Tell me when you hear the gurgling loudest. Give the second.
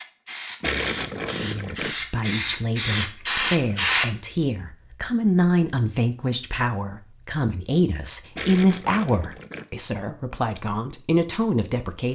1 s.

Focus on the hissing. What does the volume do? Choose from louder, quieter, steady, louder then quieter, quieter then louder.
louder.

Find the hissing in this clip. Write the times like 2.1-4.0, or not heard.
0.0-4.0.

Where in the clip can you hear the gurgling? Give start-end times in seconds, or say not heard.
0.6-1.9, 8.3-9.7.